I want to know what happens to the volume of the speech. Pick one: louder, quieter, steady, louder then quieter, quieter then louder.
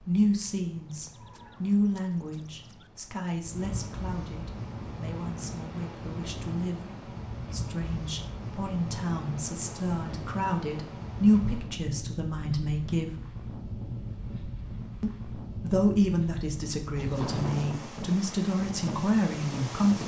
quieter then louder.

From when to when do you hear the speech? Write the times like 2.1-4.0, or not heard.
0.0-13.2, 15.0-20.0.